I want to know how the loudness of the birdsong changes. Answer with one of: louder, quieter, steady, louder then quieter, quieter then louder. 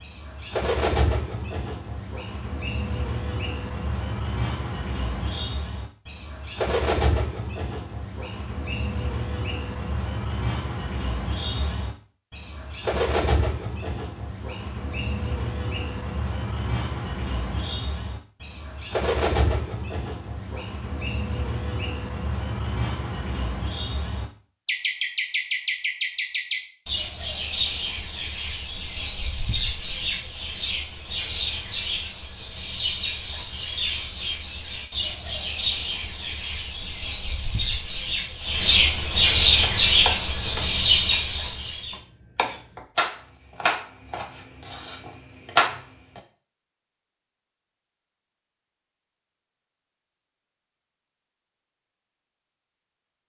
louder.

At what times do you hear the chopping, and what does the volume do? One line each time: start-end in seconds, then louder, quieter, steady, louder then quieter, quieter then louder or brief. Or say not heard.
39.6-46.2 quieter then louder.